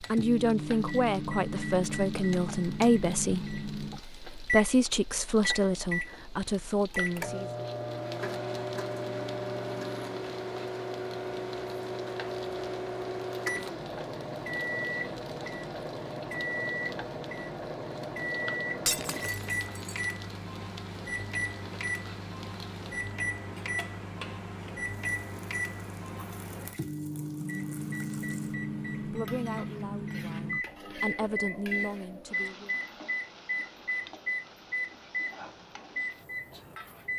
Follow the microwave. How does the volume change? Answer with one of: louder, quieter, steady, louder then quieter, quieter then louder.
steady.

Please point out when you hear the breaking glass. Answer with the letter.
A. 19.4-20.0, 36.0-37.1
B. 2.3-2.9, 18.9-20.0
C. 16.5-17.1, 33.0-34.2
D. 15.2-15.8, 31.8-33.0
B.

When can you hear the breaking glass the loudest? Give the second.
19 s.